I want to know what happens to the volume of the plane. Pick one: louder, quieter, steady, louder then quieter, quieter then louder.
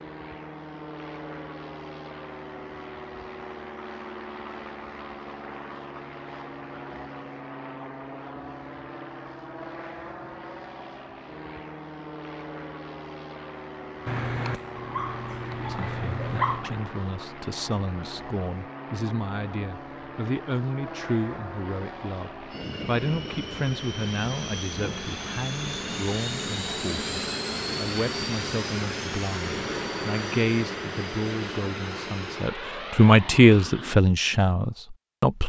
louder.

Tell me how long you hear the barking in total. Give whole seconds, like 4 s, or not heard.
3 s.